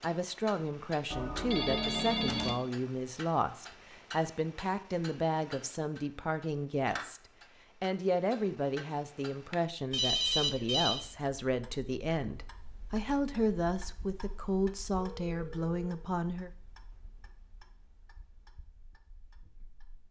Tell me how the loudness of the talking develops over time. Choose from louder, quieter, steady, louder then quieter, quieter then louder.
steady.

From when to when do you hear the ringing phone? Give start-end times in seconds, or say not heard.
1.1-2.5, 9.9-11.0, 14.9-16.1.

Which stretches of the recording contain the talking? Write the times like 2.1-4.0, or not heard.
0.0-7.2, 7.8-16.5.